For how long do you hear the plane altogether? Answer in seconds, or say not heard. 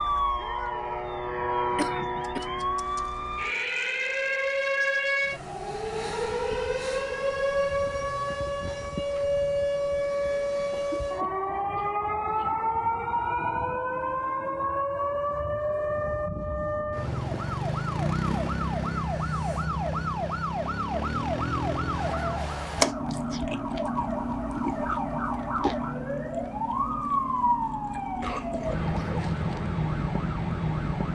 4 s.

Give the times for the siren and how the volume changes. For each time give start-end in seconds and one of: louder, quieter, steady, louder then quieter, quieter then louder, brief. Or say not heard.
0.0-31.1 steady.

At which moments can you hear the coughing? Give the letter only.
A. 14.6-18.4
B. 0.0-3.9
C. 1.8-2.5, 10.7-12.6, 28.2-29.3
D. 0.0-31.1
C.